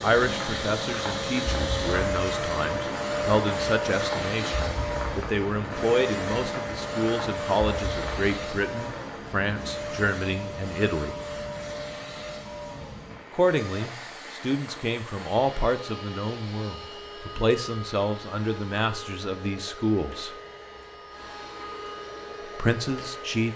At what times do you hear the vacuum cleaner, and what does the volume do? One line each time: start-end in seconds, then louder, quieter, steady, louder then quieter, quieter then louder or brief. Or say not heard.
0.0-23.5 quieter.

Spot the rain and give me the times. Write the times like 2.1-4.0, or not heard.
0.0-15.7.